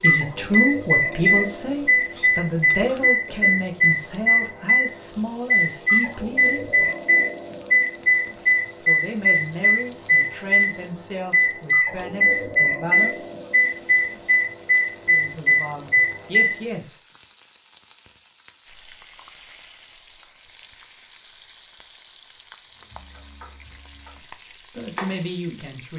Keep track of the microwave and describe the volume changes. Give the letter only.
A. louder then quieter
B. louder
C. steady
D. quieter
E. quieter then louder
C.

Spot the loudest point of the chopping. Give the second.
25 s.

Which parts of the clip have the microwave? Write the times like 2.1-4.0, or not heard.
0.0-16.6.